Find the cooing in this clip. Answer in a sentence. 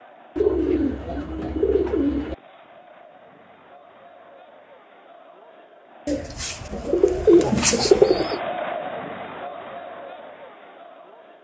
The cooing can be heard from 0.3 to 2.4 s and from 6.0 to 8.4 s.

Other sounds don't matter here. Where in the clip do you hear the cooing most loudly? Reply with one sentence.
The loudest moment of the cooing is at 8 seconds.